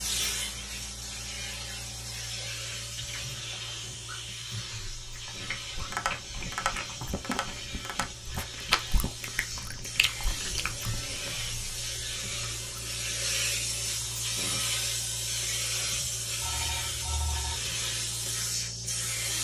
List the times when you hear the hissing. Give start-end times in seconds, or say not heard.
0.0-19.3.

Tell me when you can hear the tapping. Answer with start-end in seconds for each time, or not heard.
5.8-8.1.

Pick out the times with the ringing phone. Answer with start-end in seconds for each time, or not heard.
3.2-4.2, 16.4-17.6.